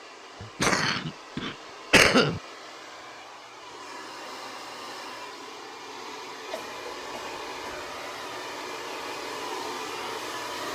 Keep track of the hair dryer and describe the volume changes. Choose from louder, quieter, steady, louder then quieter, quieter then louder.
louder.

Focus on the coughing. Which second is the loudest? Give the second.
2 s.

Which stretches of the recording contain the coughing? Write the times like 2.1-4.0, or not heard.
0.4-2.4, 6.5-8.0.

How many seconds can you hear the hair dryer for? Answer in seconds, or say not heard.
11 s.